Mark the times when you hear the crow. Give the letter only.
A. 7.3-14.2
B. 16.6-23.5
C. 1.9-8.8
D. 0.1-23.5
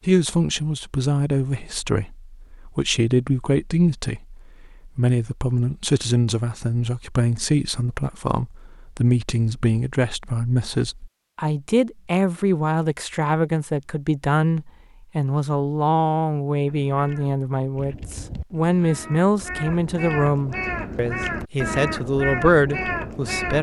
B.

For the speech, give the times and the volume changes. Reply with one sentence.
You can hear the speech from 0.1 to 23.5 s, at a steady volume.